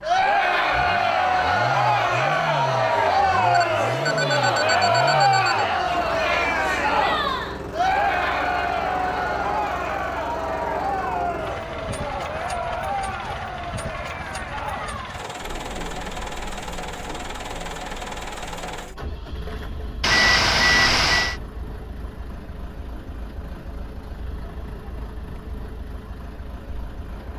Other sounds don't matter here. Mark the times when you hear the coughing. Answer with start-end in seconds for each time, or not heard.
not heard.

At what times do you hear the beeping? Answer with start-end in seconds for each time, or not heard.
3.5-5.7, 20.0-21.4.